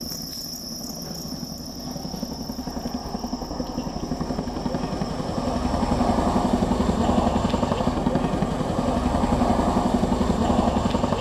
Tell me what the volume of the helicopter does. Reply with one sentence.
The loudness of the helicopter goes up.